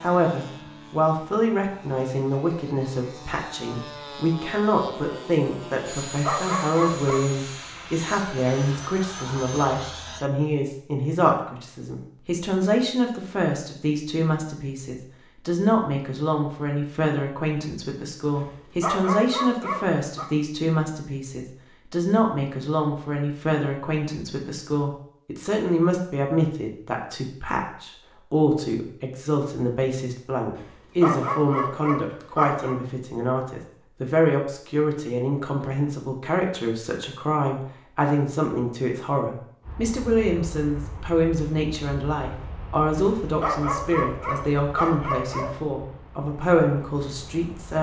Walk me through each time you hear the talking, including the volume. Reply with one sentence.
The talking can be heard from 0.0 to 47.7 s, at a steady volume.